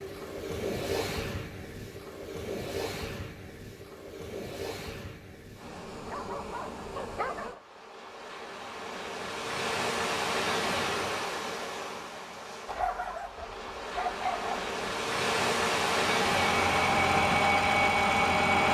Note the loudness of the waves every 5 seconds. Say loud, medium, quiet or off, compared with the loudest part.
medium, medium, medium, loud.